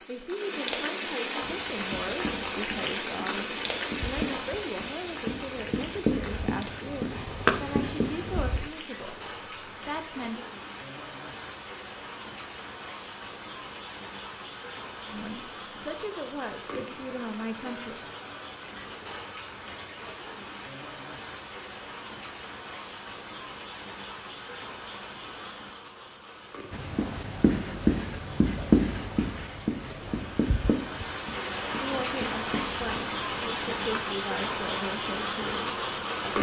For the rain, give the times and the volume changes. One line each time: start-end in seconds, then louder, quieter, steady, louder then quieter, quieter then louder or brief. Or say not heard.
0.0-36.3 quieter then louder.